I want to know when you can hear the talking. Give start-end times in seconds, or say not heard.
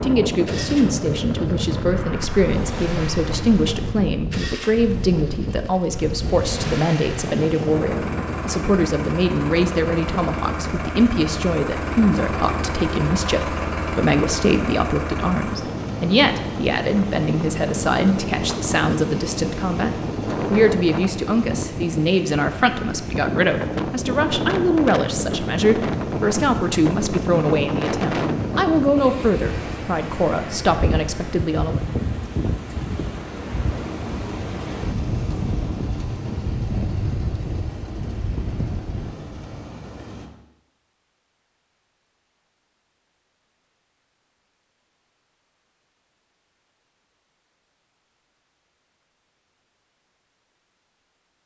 0.0-31.8.